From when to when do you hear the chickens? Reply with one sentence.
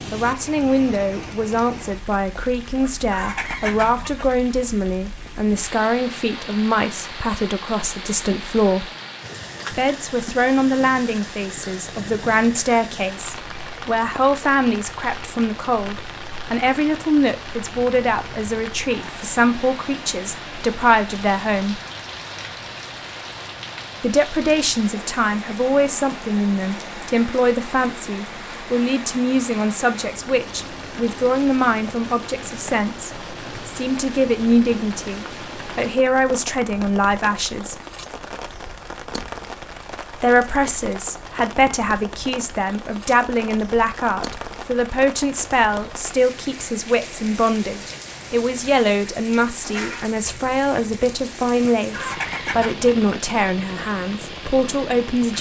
You can hear the chickens from 2.8 to 4.3 s and from 51.6 to 53.0 s.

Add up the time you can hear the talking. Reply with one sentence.
You can hear the talking for 50 seconds altogether.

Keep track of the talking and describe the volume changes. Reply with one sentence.
The loudness of the talking stays about the same.